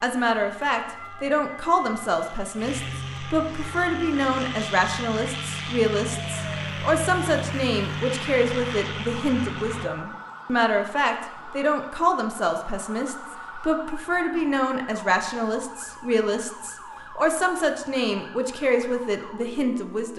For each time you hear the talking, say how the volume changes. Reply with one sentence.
The talking can be heard from 0.0 to 20.1 s, at a steady volume.